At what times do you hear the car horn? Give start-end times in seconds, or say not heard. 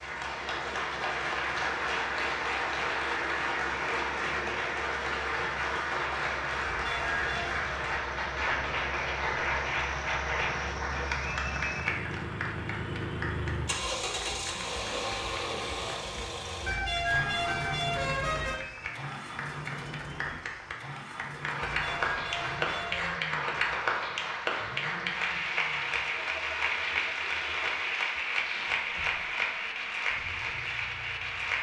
6.8-7.7, 16.6-18.6, 21.6-23.2.